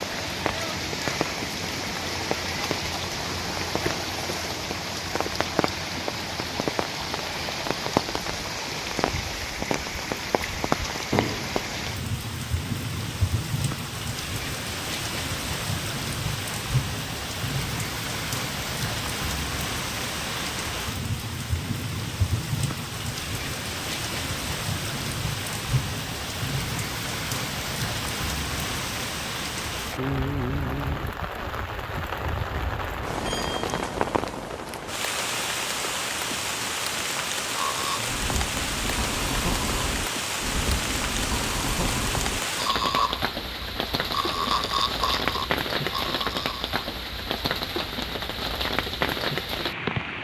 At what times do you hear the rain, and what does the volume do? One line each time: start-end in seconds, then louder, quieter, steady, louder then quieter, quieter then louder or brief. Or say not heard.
0.0-50.1 steady.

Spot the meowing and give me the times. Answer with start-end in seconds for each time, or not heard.
11.1-11.9.